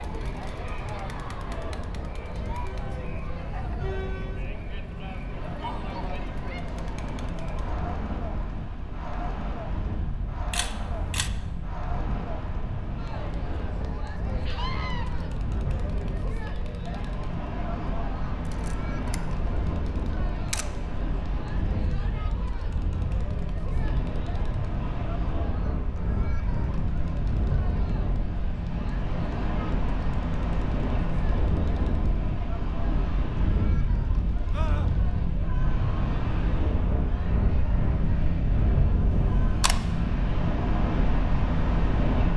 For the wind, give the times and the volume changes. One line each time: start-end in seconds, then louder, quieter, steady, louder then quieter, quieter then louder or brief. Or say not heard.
0.0-42.3 louder.